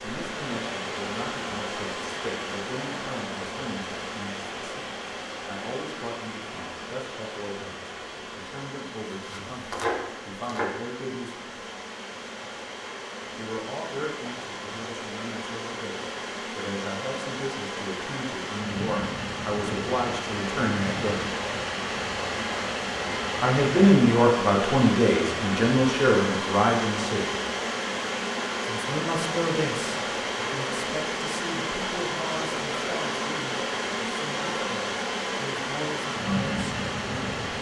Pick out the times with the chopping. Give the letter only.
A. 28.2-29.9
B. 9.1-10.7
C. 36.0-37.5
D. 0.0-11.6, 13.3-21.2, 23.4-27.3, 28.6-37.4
B.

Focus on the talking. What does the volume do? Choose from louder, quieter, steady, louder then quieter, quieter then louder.
louder then quieter.